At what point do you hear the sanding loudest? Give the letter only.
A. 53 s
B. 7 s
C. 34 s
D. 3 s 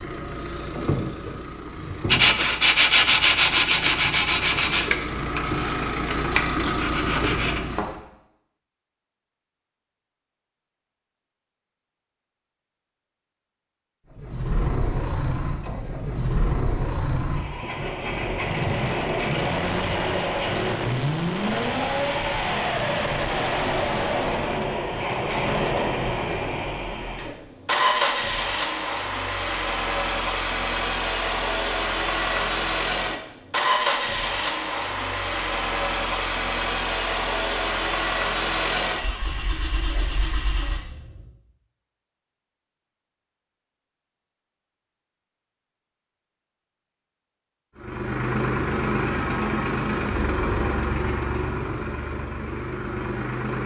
D.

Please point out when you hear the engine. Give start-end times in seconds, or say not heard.
0.0-8.0, 14.1-41.3, 47.8-53.6.